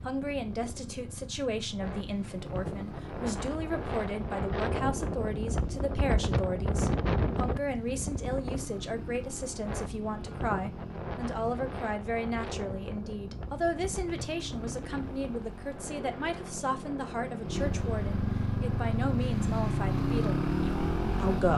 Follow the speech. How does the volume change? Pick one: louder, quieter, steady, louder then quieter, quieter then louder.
steady.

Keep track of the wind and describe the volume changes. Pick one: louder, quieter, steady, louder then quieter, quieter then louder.
louder then quieter.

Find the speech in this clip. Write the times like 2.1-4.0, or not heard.
0.1-21.5.